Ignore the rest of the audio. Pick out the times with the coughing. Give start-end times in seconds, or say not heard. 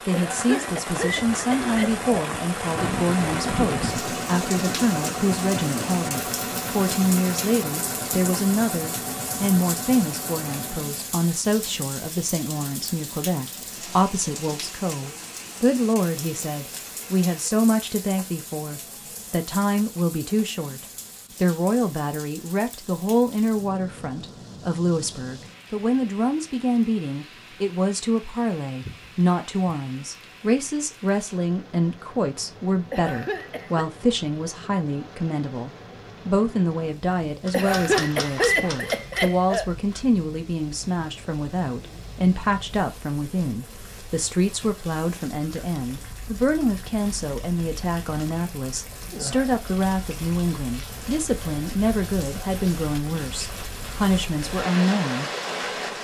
0.1-2.0, 32.9-33.9, 37.5-39.6.